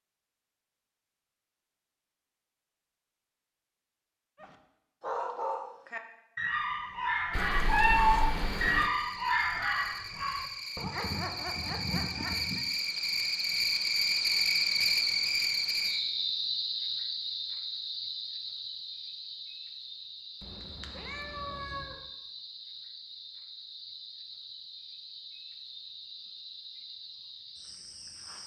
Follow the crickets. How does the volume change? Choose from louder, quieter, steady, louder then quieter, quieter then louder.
louder then quieter.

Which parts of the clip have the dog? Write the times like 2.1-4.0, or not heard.
4.3-12.7.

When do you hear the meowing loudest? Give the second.
8 s.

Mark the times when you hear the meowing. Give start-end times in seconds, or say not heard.
7.3-8.9, 20.4-21.9.